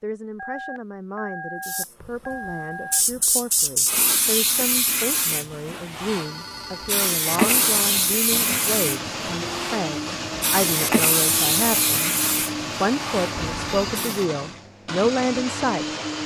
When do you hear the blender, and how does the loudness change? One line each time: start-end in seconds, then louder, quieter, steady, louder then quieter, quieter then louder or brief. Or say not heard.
7.2-16.2 steady.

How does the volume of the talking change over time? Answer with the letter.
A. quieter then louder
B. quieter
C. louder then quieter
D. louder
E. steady
D.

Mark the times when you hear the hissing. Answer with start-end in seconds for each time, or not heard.
1.6-14.2.